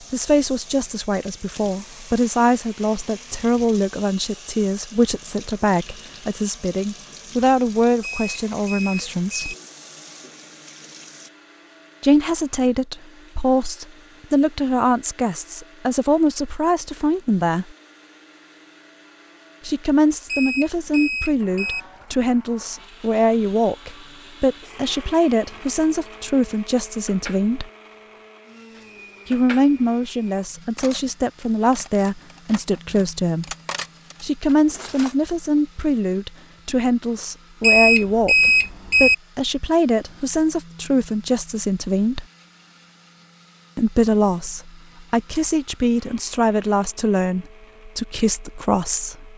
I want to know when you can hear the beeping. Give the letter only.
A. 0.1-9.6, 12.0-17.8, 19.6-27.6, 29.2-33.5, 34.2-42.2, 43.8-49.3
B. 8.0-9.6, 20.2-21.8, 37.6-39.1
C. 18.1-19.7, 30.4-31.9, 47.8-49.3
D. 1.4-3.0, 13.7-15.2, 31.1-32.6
B.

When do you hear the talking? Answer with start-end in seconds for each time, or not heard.
0.1-9.6, 12.0-17.8, 19.6-27.6, 29.2-33.5, 34.2-42.2, 43.8-49.3.